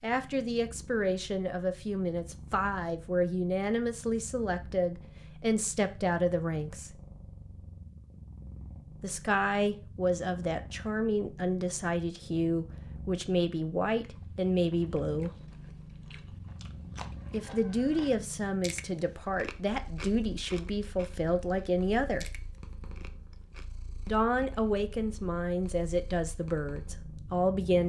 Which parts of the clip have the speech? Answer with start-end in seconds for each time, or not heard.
0.0-6.9, 9.0-15.3, 17.3-22.2, 24.1-27.8.